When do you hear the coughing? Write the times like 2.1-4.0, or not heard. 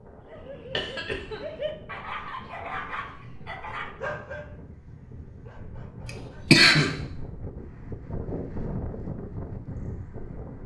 0.7-1.6, 6.5-7.0.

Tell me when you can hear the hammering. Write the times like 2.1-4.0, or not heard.
not heard.